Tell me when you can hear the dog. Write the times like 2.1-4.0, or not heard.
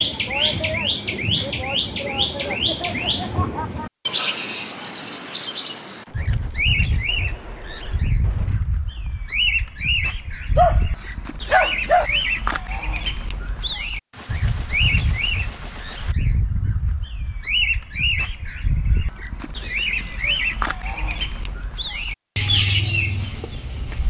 10.6-12.1.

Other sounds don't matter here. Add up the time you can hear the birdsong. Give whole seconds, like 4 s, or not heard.
24 s.